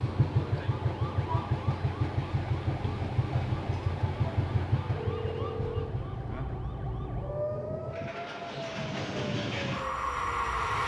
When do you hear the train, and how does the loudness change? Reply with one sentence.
You can hear the train from 0.0 to 10.8 s, getting quieter then louder.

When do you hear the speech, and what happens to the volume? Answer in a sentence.
The speech can't be heard in this clip.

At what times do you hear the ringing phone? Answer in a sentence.
You can hear the ringing phone from 4.9 to 5.9 s.